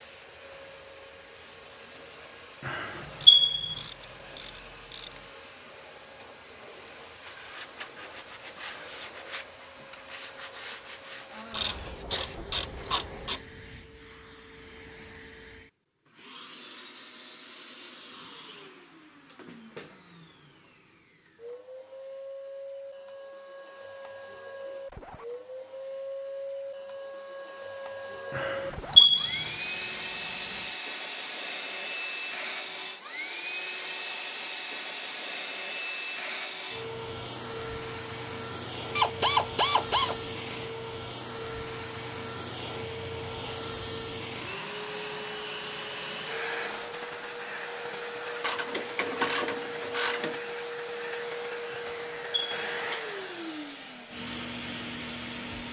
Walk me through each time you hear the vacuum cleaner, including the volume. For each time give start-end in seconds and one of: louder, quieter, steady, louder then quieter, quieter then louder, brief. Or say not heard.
0.0-55.6 louder.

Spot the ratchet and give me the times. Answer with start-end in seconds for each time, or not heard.
3.2-5.2, 11.5-13.4, 28.9-30.8, 39.0-40.2, 48.4-50.4.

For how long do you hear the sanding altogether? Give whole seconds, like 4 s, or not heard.
7 s.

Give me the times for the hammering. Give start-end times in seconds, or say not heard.
not heard.